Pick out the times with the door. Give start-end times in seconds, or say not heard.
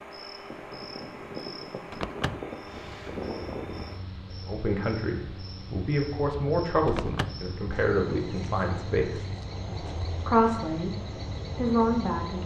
1.9-2.5, 6.8-7.5.